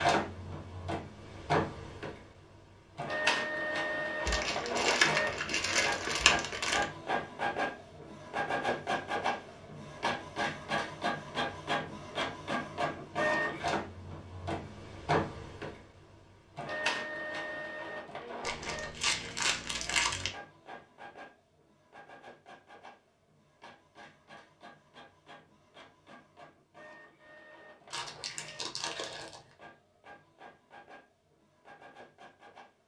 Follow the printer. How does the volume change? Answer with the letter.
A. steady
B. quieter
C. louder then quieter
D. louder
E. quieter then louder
B.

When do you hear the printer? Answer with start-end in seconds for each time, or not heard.
0.0-32.8.